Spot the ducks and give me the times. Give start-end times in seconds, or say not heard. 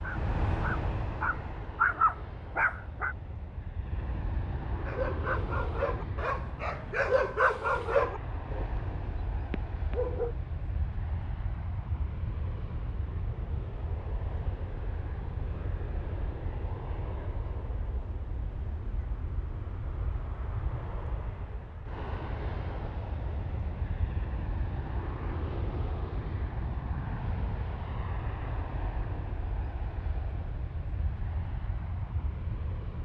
not heard.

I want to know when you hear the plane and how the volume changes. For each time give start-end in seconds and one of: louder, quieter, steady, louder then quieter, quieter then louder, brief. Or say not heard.
0.0-33.0 steady.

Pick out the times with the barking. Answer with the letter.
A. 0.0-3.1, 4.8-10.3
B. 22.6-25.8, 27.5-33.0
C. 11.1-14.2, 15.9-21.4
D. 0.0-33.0
A.